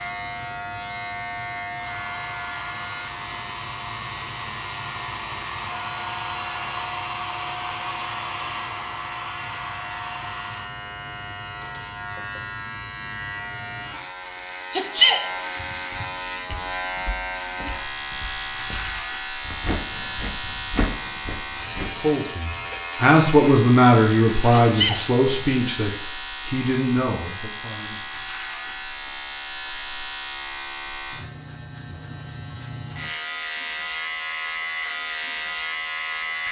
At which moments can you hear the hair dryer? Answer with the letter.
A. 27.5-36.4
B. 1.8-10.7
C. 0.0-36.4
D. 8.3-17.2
B.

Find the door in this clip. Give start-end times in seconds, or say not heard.
not heard.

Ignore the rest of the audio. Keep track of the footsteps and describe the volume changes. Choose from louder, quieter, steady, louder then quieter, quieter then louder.
louder.